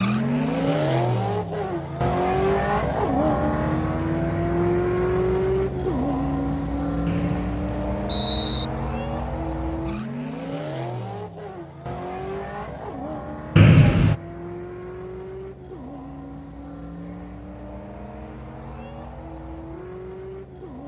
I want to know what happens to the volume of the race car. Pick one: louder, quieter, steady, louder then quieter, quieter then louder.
quieter.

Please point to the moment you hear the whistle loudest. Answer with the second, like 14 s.
14 s.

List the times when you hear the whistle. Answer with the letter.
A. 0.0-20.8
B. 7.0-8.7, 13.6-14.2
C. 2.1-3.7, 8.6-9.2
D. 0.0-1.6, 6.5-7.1
B.